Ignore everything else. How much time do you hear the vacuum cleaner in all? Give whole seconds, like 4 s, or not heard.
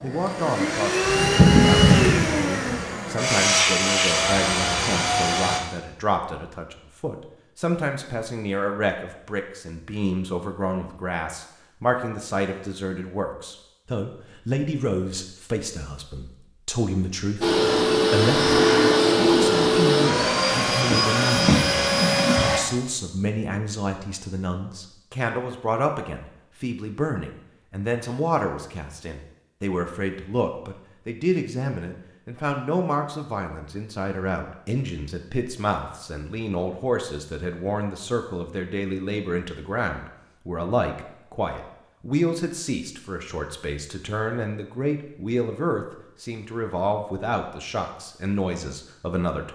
11 s.